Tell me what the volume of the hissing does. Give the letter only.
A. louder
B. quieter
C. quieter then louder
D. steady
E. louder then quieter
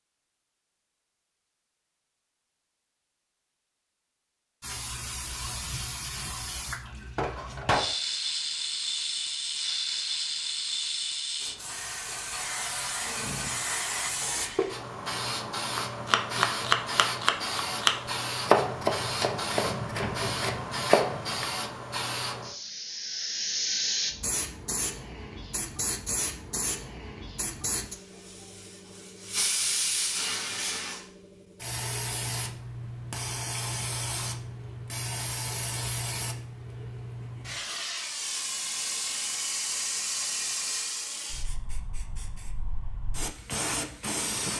D.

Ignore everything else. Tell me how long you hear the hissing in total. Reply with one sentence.
The hissing can be heard for 40 seconds in total.